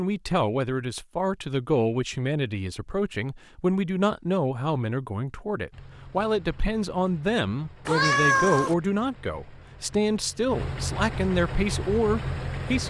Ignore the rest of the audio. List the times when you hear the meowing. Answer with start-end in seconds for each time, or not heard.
7.8-8.8.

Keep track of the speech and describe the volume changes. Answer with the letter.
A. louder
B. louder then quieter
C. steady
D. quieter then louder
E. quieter
C.